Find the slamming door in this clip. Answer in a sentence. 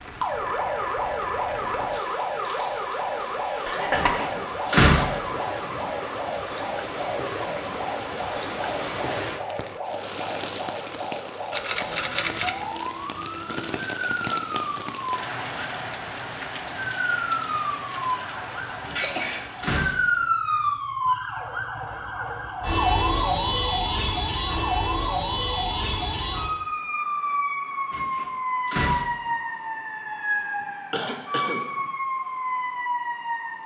You can hear the slamming door from 3.9 to 5.3 s, from 18.8 to 20.2 s and from 27.9 to 29.4 s.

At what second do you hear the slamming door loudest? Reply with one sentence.
The volume of the slamming door peaks at 5 seconds.